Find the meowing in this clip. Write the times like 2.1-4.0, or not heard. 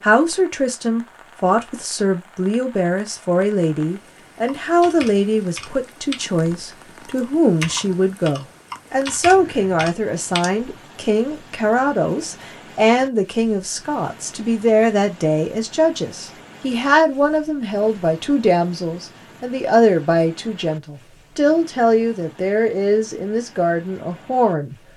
not heard.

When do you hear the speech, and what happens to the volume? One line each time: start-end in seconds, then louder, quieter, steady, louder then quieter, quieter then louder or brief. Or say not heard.
0.0-24.8 steady.